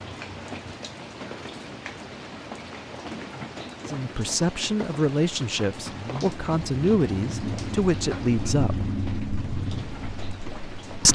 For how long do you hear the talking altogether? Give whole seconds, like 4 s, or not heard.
5 s.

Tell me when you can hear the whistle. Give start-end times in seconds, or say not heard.
not heard.